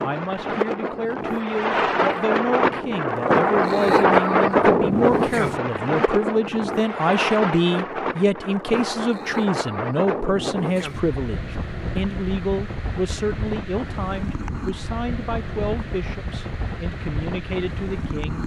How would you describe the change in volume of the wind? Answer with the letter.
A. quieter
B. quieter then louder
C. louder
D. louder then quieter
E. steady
A.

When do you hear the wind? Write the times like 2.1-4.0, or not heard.
0.0-18.4.